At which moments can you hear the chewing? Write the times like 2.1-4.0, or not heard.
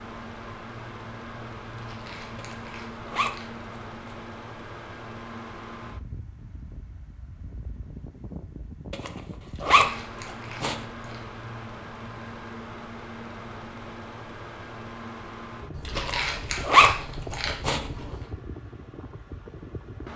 1.7-3.6, 9.4-11.2, 15.7-18.3.